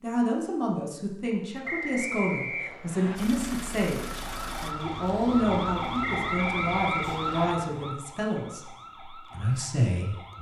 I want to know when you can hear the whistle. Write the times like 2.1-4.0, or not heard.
1.6-3.2, 6.0-7.5.